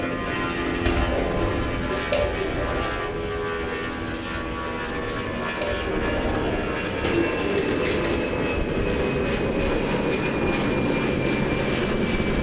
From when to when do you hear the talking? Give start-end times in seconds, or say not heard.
not heard.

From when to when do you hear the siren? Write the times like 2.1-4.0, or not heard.
not heard.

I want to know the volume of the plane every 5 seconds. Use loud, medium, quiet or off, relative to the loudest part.
medium, loud, loud.